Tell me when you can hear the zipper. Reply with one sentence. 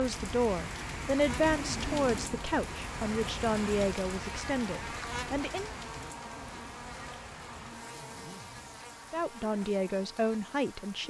The zipper can be heard from 1.4 to 2.5 s and from 5.9 to 8.6 s.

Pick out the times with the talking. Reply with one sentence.
The talking can be heard from 0.0 to 5.7 s and from 9.1 to 11.0 s.